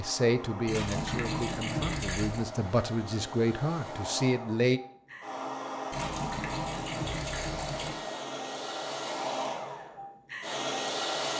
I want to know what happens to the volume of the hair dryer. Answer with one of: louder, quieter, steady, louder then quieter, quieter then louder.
louder.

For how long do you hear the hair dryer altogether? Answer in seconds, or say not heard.
11 s.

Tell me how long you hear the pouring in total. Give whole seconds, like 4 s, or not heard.
4 s.